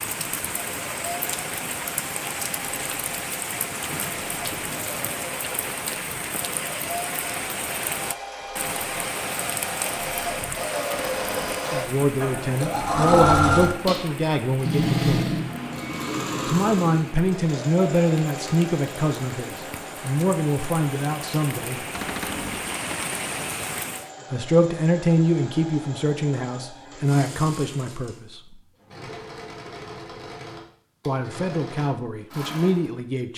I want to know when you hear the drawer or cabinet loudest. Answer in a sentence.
The loudest moment of the drawer or cabinet is at 22 seconds.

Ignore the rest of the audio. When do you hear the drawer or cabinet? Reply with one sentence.
The drawer or cabinet can be heard from 10.9 to 11.7 s and from 21.9 to 22.7 s.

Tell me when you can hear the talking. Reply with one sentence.
You can hear the talking from 11.7 to 15.3 s, from 16.4 to 21.9 s, from 24.3 to 28.6 s and from 31.1 to 33.3 s.